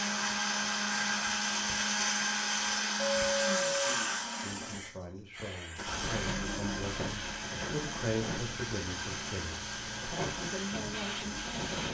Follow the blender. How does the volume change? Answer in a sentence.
The loudness of the blender goes down.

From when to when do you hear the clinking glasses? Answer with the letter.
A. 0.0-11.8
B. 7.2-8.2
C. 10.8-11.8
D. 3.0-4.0
D.